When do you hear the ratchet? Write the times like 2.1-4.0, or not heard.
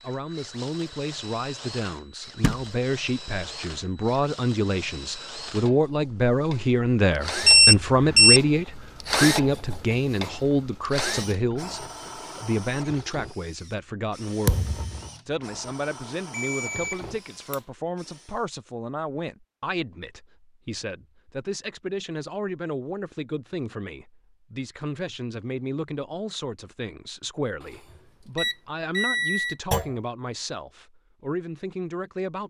not heard.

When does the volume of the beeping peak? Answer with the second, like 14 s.
8 s.